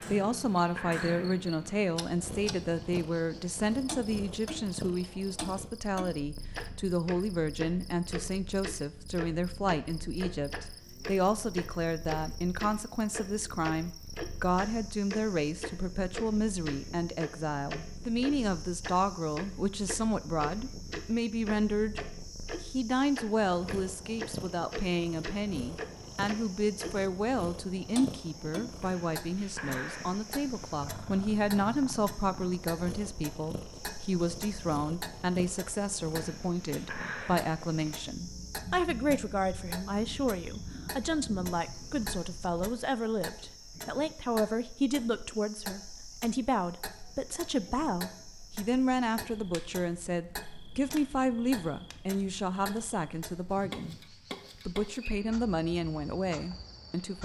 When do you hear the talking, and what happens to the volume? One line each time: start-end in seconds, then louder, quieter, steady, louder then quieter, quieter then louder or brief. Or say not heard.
0.1-57.1 steady.